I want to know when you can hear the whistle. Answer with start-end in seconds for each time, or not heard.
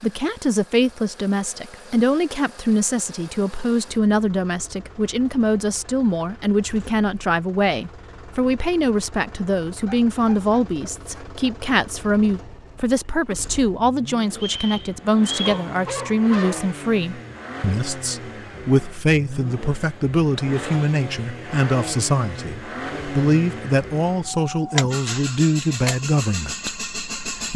14.3-15.7.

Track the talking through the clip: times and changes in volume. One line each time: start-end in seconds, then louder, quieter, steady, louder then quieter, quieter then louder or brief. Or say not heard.
0.0-27.5 steady.